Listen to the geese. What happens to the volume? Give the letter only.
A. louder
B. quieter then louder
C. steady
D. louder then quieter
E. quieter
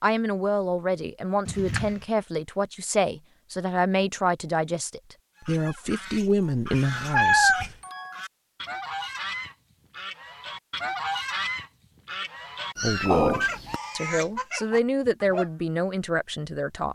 A.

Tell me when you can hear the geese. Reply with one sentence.
You can hear the geese from 5.3 to 15.5 s.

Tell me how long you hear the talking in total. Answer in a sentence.
The talking can be heard for 12 seconds in total.